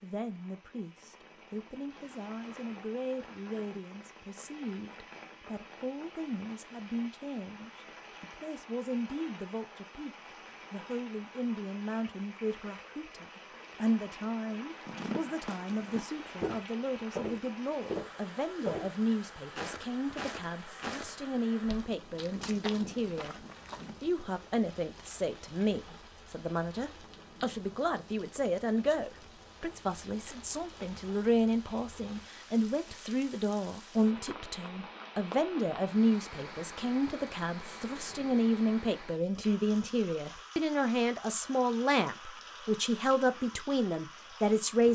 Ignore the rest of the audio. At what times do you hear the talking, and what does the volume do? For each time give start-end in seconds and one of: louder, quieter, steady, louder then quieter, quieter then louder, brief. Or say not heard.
0.0-44.9 louder.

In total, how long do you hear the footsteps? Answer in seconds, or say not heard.
9 s.